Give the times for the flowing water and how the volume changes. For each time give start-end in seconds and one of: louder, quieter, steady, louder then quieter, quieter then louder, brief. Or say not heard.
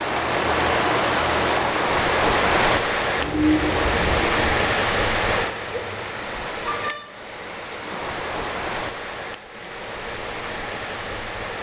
0.0-11.5 quieter.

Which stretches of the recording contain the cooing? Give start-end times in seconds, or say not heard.
3.1-4.8.